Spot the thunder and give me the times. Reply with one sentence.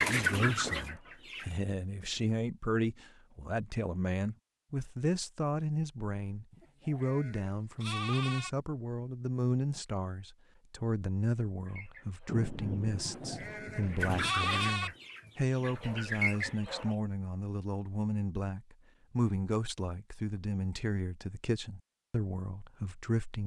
The thunder can be heard from 12.2 to 14.3 s.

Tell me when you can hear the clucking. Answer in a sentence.
The clucking can be heard from 0.0 to 1.6 s and from 11.7 to 16.9 s.